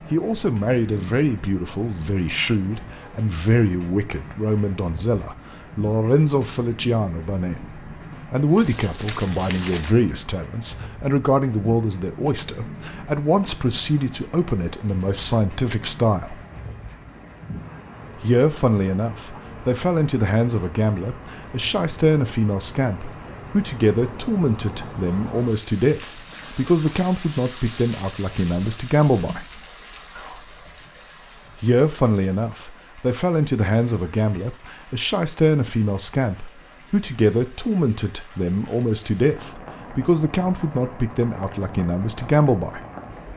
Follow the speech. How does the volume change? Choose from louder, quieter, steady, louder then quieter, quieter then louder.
steady.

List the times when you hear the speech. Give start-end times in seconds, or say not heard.
0.1-16.4, 18.2-29.4, 31.6-42.8.